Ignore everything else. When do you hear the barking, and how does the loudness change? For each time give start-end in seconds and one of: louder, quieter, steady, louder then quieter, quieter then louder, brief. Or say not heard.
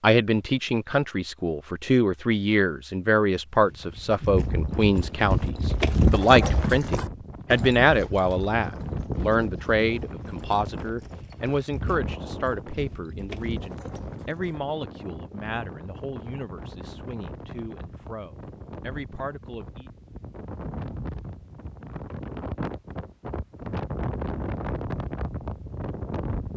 not heard.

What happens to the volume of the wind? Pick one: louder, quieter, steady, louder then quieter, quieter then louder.
louder.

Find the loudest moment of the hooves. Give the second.
6 s.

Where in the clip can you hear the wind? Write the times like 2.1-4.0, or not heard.
4.3-26.5.